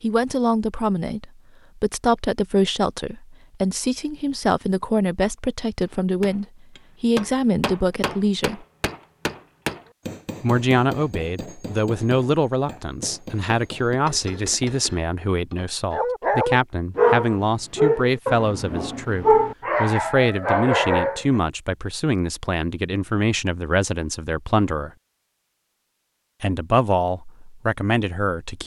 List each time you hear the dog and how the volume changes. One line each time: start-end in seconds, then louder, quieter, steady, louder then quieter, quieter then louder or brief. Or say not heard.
15.9-21.4 quieter then louder.